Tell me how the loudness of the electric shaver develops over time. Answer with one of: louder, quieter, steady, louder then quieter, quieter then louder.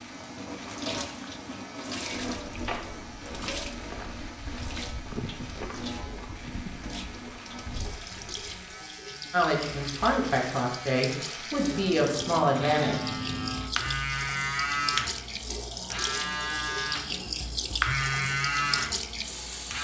louder.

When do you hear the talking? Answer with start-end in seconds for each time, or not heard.
9.3-13.1.